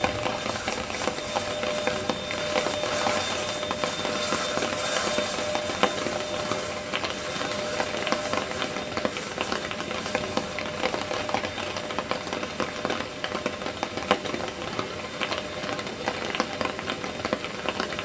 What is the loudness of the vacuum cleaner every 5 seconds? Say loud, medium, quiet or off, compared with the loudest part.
loud, loud, medium, medium.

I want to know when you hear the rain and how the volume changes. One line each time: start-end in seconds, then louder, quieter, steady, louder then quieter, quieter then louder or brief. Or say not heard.
0.0-17.9 steady.